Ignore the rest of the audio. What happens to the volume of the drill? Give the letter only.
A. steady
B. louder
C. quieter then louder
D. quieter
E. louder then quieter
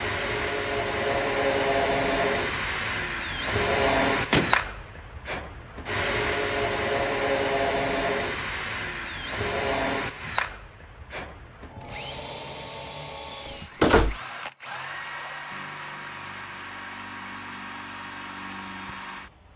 D.